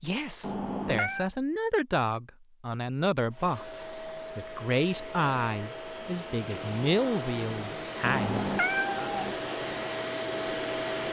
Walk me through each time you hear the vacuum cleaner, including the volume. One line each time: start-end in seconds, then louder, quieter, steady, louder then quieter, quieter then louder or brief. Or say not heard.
3.3-11.0 louder.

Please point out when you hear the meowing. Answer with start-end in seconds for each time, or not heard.
0.4-1.3, 8.0-9.3.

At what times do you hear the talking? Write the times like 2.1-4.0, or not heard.
0.0-9.1.